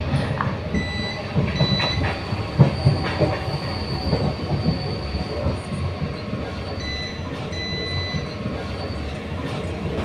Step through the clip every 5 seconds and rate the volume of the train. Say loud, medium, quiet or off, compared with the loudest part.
loud, medium.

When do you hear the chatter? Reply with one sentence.
You can't hear the chatter here.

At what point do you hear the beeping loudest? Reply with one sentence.
The volume of the beeping peaks at 2 seconds.